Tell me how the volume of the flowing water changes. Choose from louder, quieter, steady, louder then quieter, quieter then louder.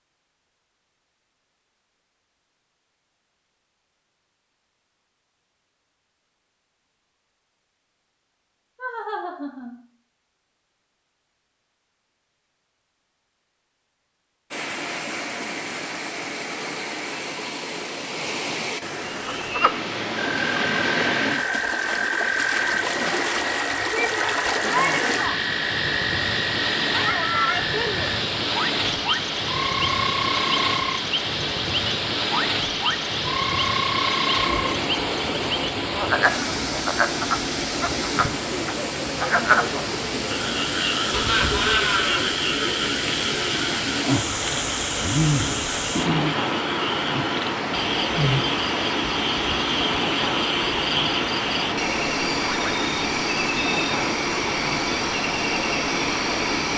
steady.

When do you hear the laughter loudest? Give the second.
42 s.